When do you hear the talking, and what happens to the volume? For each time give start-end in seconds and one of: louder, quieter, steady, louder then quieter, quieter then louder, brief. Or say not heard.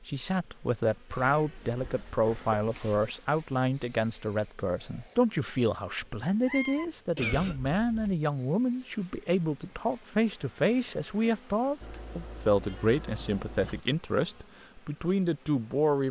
0.0-16.0 steady.